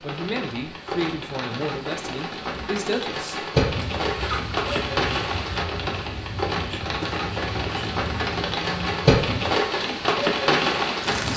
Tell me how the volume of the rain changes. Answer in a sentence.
The loudness of the rain goes up.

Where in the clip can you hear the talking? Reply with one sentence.
The talking can be heard from 0.0 to 3.5 s.